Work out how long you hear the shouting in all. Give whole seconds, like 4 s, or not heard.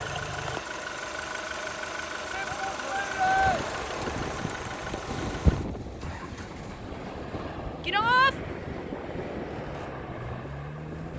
2 s.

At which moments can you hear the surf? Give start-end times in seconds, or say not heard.
3.0-11.1.